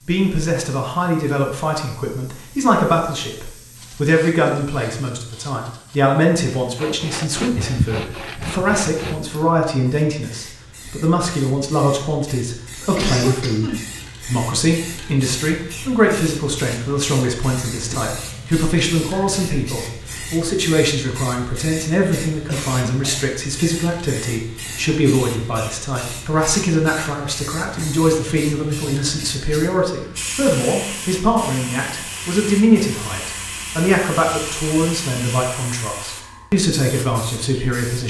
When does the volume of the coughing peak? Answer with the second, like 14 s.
13 s.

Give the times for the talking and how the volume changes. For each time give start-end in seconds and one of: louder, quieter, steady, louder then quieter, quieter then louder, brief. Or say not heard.
0.1-38.0 steady.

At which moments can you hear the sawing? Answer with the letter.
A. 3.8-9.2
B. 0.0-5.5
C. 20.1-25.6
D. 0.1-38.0
A.